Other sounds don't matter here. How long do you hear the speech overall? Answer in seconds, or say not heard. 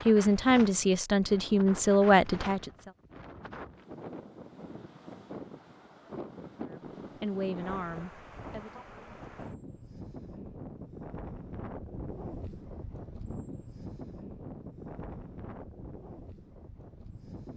5 s.